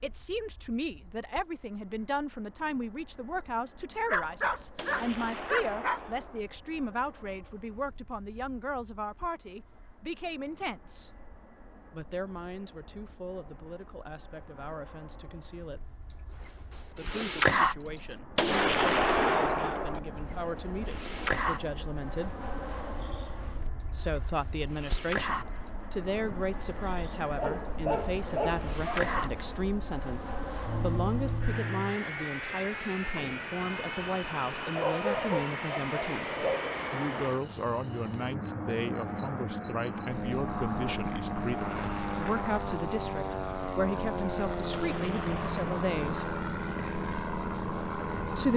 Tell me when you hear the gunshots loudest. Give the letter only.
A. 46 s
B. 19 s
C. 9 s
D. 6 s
B.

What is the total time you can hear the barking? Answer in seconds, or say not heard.
6 s.